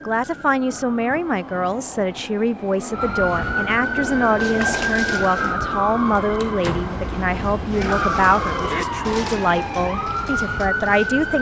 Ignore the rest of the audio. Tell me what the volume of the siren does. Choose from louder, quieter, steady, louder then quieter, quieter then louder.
louder.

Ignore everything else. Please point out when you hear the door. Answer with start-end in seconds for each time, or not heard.
6.3-7.0.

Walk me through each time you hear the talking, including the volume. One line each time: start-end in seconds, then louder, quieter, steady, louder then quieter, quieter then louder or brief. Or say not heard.
0.1-11.3 steady.